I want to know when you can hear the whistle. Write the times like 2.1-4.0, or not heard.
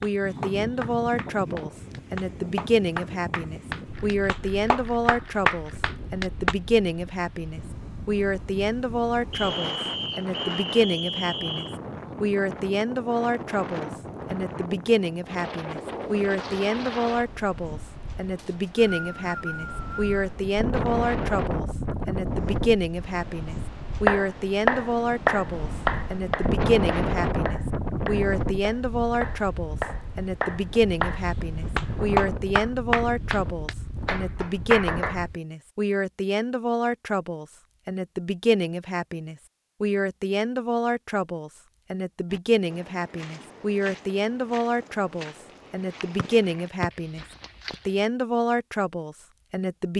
9.3-11.8, 18.4-20.1, 46.1-46.9.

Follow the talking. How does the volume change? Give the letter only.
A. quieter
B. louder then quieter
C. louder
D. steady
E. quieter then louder
D.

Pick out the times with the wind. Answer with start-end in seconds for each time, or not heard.
0.0-35.4.